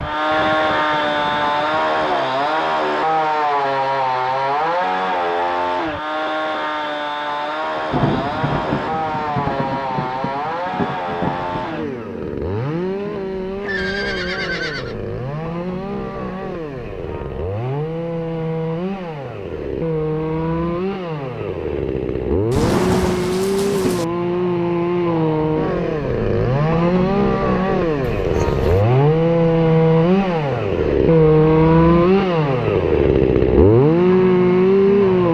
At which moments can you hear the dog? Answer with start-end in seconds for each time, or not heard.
not heard.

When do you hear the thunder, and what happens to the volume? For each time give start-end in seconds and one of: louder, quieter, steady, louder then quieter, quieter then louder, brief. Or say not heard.
7.8-11.8 quieter then louder
22.5-24.1 brief.